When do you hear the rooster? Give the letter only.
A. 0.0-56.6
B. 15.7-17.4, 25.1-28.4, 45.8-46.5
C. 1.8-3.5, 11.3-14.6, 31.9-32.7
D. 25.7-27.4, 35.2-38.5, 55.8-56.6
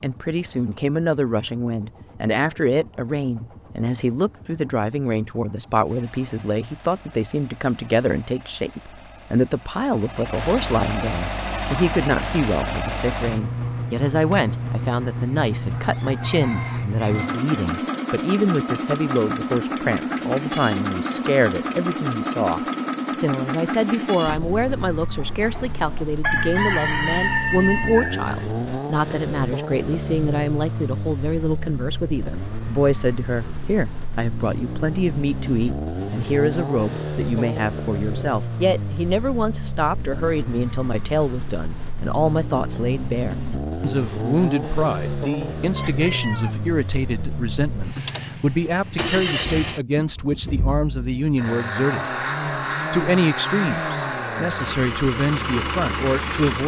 B.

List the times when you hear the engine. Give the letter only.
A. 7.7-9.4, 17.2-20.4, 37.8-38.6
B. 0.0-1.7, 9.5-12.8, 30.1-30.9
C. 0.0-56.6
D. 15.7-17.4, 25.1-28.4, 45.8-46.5
C.